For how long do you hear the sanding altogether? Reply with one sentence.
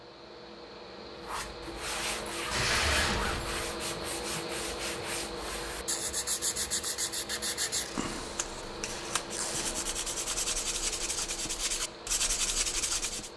You can hear the sanding for 12 seconds altogether.